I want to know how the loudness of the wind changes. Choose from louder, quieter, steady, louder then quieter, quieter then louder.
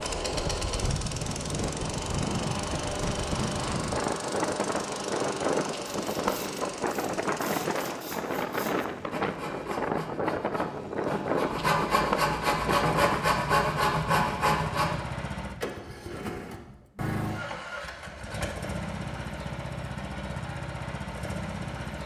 steady.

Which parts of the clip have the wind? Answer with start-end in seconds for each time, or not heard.
0.0-13.3.